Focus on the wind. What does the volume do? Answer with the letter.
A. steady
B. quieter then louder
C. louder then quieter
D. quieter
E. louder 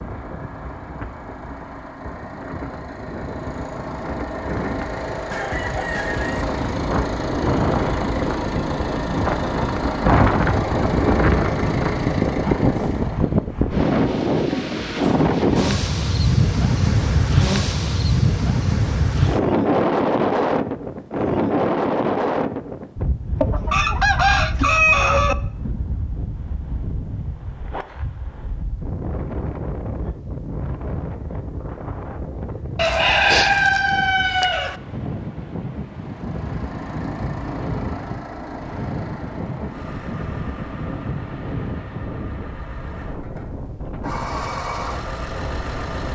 C.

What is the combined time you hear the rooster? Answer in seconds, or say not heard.
5 s.